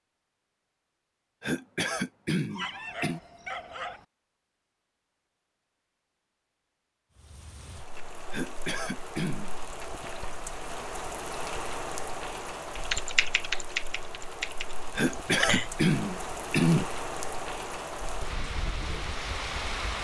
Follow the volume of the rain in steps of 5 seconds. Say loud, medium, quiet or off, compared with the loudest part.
off, medium, loud, loud.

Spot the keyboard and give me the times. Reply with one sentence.
The keyboard can be heard from 12.8 to 15.7 s.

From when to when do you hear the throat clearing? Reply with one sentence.
You can hear the throat clearing from 1.4 to 3.2 s, from 8.3 to 9.6 s and from 14.9 to 16.9 s.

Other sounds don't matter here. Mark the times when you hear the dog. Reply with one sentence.
You can hear the dog from 2.5 to 4.0 s.